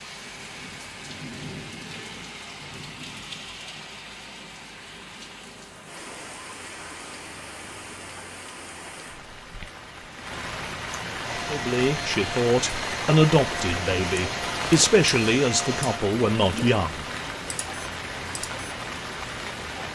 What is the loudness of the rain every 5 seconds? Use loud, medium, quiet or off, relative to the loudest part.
medium, medium, loud, loud.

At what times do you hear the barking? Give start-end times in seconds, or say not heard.
not heard.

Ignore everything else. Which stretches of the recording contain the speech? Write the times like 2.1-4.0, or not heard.
11.4-17.1.